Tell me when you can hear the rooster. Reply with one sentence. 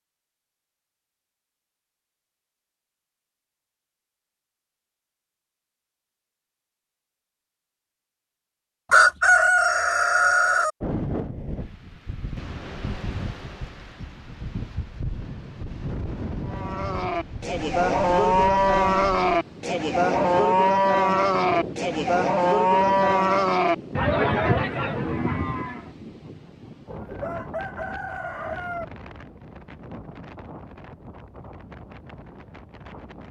The rooster can be heard from 8.9 to 10.7 s and from 26.9 to 28.9 s.